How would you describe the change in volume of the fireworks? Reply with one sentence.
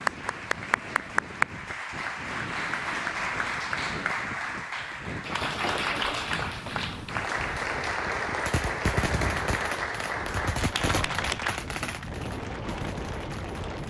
The loudness of the fireworks goes down.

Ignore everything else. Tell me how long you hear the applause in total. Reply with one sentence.
You can hear the applause for 14 seconds altogether.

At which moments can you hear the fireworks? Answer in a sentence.
You can hear the fireworks from 8.4 to 13.8 s.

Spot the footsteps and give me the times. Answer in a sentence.
You can't hear the footsteps here.